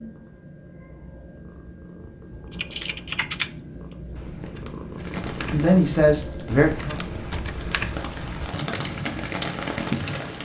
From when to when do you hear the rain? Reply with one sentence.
The rain can be heard from 5.0 to 10.4 s.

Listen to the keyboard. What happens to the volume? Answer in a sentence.
The loudness of the keyboard goes down, then up.